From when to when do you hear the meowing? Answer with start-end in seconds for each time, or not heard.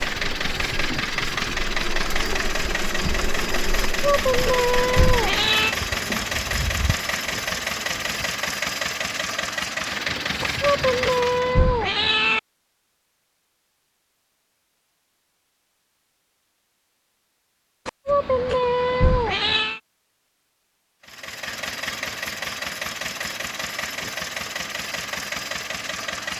3.9-5.8, 10.4-12.4, 17.9-19.8.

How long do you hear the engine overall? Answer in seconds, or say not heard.
17 s.